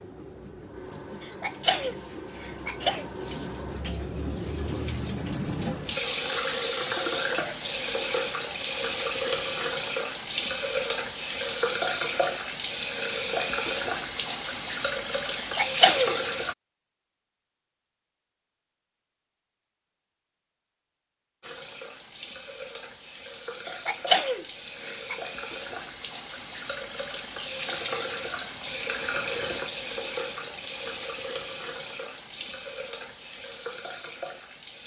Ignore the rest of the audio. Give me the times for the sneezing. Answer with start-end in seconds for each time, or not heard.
1.2-3.0, 15.3-16.1, 23.6-25.2.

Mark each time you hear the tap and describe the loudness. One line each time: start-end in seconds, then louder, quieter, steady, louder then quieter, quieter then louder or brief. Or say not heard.
0.0-16.6 louder
21.4-34.8 louder then quieter.